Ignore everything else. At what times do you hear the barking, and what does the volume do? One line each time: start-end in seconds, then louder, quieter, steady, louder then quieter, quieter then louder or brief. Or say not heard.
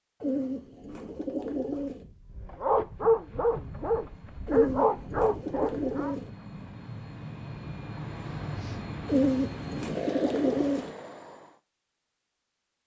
0.5-6.2 louder.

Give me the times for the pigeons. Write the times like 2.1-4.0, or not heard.
0.2-2.0, 4.5-6.3, 9.1-10.9.